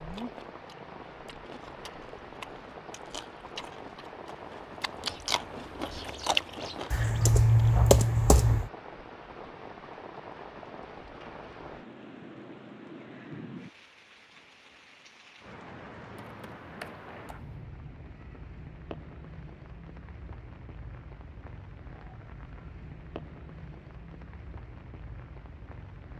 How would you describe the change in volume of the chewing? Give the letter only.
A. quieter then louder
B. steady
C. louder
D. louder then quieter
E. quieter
C.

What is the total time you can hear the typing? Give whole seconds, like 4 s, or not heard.
3 s.